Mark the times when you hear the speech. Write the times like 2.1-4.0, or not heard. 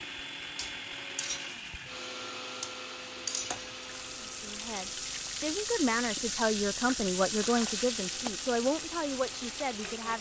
4.2-10.1.